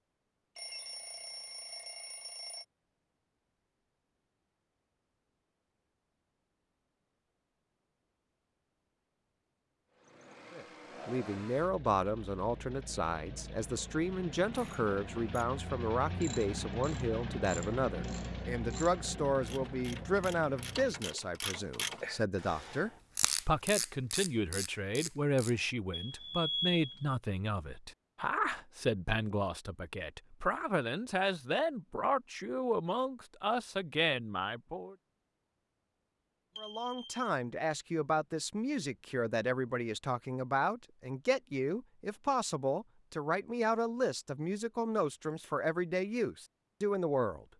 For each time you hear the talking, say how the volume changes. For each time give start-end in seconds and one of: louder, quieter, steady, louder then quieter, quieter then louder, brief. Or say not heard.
10.5-35.0 steady
36.5-47.5 steady.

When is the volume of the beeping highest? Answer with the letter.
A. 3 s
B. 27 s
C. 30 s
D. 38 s
B.